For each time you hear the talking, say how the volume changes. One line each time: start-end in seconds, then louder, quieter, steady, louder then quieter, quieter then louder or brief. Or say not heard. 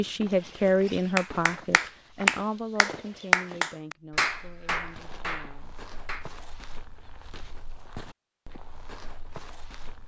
0.0-5.8 quieter.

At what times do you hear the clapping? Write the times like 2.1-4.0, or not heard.
1.1-6.2.